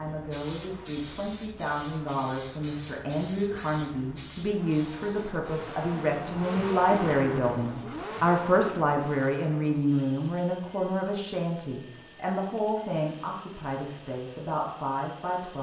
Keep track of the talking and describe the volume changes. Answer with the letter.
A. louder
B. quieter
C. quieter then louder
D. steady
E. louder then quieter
E.